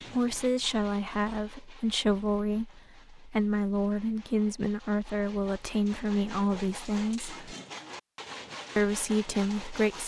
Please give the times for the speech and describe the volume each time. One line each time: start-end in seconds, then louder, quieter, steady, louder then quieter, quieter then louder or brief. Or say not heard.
0.1-7.4 steady
8.8-10.0 brief.